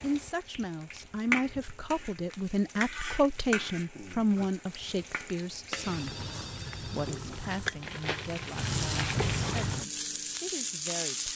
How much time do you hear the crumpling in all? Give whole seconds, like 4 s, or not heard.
2 s.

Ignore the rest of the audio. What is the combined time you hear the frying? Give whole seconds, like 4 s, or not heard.
11 s.